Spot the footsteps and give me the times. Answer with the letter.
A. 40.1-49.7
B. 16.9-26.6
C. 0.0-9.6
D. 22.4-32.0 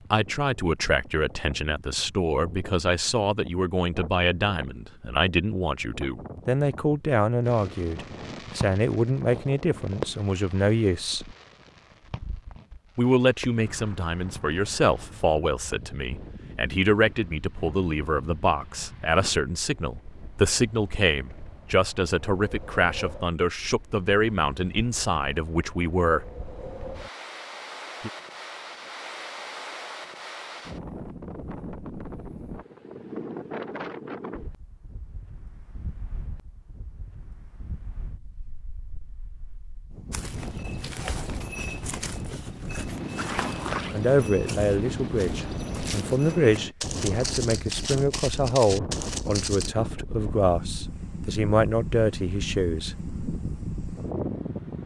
A.